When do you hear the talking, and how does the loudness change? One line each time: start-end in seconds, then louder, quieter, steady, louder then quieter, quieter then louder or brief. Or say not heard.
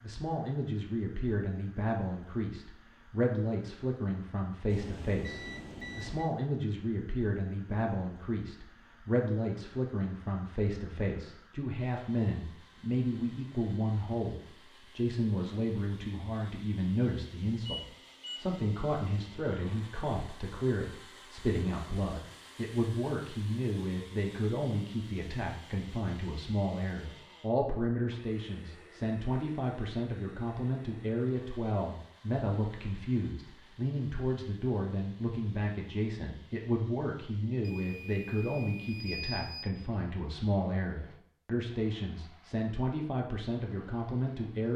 0.0-44.7 steady.